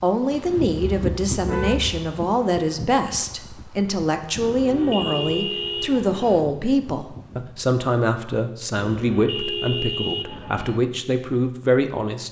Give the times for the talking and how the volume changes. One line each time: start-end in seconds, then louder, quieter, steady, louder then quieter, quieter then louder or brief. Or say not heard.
0.0-12.2 steady.